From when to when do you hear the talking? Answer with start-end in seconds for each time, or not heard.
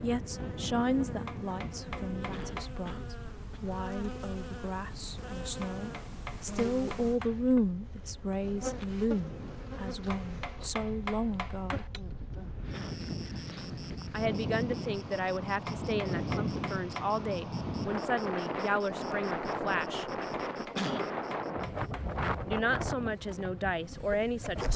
0.0-11.9, 14.1-20.1, 22.4-24.7.